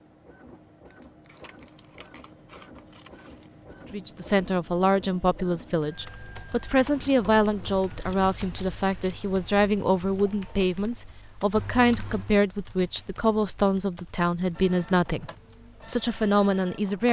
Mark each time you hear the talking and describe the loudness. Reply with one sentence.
You can hear the talking from 3.9 to 17.0 s, at a steady volume.